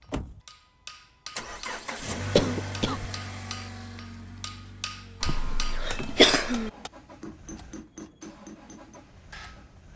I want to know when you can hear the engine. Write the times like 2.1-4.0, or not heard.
0.0-9.9.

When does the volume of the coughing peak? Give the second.
6 s.